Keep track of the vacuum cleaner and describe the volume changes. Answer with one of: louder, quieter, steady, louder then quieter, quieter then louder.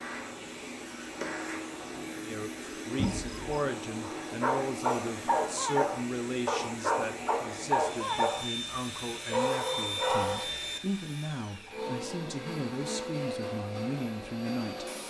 steady.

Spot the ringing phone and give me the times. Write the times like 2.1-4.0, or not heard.
3.0-3.5.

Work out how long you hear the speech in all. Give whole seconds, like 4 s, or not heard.
13 s.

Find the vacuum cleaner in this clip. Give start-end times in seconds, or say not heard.
0.0-15.0.